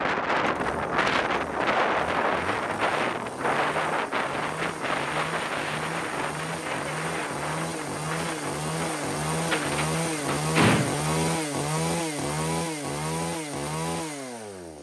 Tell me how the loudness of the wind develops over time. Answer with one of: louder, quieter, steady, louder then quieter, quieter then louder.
quieter.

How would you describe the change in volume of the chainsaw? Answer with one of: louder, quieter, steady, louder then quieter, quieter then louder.
louder.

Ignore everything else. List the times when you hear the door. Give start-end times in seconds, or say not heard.
9.4-10.9.